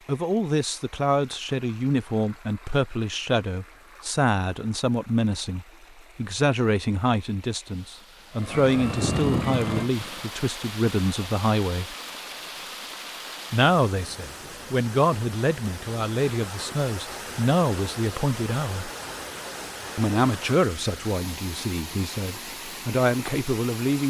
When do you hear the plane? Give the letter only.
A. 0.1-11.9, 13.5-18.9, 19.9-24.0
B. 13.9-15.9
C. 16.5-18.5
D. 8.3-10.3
D.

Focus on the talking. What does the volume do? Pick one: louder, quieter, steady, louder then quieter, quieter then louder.
steady.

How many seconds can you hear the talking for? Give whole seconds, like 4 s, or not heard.
21 s.